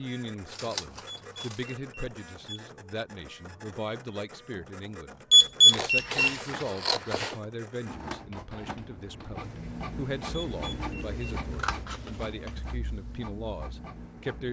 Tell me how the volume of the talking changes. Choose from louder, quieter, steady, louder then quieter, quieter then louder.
steady.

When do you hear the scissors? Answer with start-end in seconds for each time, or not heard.
0.5-1.7, 5.7-7.4, 11.5-12.6.